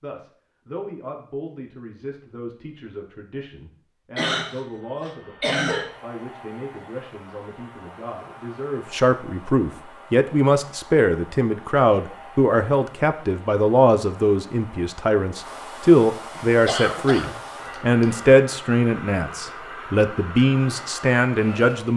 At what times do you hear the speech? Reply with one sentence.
The speech can be heard from 0.0 to 21.9 s.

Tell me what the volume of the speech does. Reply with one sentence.
The volume of the speech goes up.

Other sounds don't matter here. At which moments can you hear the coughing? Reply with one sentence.
You can hear the coughing from 4.2 to 5.9 s and from 16.4 to 18.2 s.